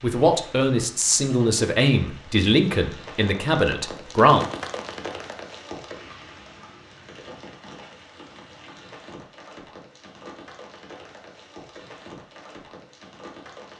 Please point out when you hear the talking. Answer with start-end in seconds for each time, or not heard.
0.0-4.5.